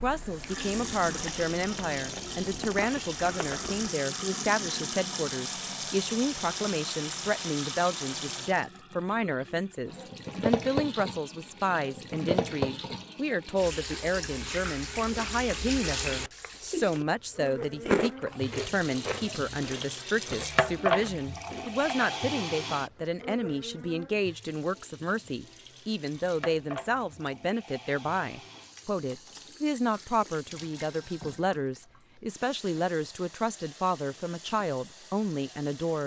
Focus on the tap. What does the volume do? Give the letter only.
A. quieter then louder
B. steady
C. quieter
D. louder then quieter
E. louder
C.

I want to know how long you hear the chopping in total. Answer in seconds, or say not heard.
not heard.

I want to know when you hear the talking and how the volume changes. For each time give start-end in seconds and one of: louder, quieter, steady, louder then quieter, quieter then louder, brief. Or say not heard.
0.0-36.0 steady.